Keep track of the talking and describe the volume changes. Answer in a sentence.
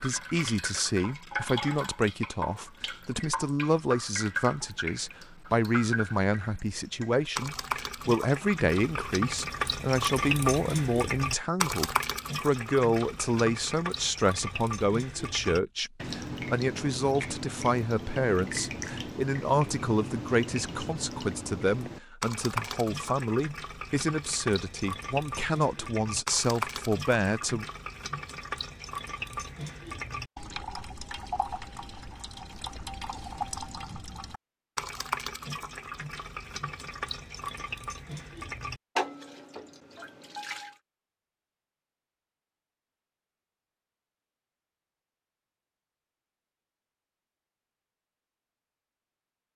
The volume of the talking stays about the same.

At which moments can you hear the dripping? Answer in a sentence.
The dripping can be heard from 0.0 to 40.8 s.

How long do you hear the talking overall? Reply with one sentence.
The talking can be heard for 28 seconds in total.